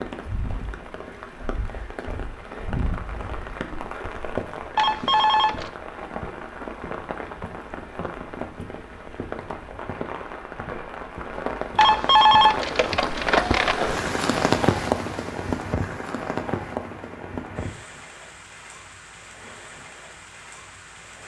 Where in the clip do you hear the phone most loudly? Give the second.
12 s.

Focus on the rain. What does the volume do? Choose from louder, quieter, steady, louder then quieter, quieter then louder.
louder then quieter.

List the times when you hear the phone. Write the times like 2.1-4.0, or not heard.
4.8-5.7, 11.8-13.8.